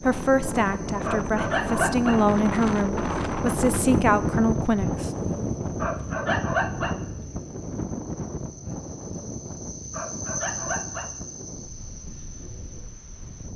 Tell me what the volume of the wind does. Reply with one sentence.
The loudness of the wind goes down.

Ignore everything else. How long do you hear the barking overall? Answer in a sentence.
The barking can be heard for 4 seconds in total.